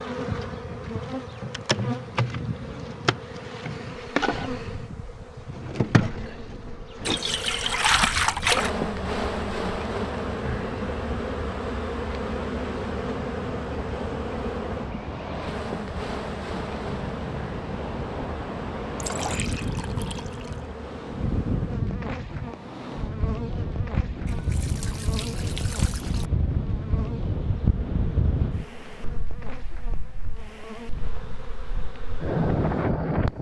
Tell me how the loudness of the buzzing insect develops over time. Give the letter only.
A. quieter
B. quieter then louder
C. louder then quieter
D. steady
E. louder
A.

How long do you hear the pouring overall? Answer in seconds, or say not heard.
5 s.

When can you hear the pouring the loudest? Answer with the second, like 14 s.
8 s.